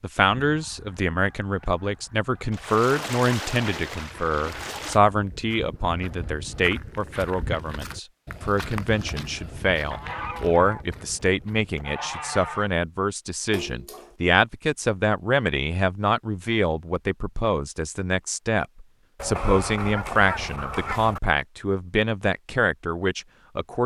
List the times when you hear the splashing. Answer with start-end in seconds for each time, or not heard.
2.5-5.0, 13.5-14.2.